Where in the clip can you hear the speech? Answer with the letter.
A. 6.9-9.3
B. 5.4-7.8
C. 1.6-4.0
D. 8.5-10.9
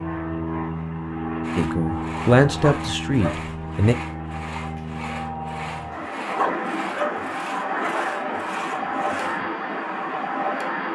C.